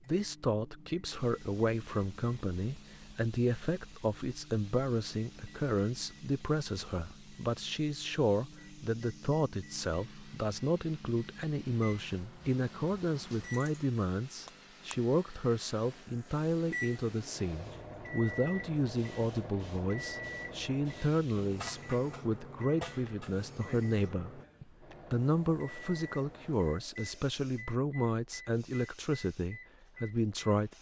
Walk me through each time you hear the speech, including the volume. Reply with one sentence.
You can hear the speech from 0.1 to 30.7 s, at a steady volume.